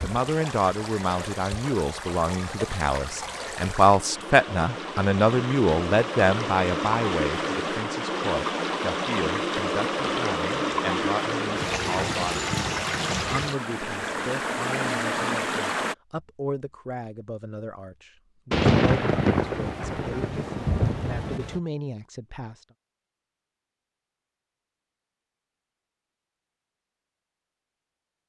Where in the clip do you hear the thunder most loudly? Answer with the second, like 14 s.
19 s.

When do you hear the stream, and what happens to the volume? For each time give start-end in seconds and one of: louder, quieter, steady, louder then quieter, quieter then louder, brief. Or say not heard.
0.0-15.9 louder.